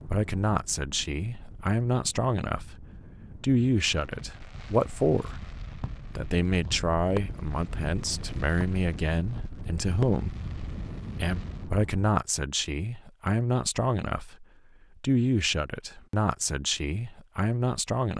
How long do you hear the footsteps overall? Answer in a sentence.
The footsteps can't be heard in this clip.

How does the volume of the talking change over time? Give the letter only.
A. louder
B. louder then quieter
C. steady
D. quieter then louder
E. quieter
C.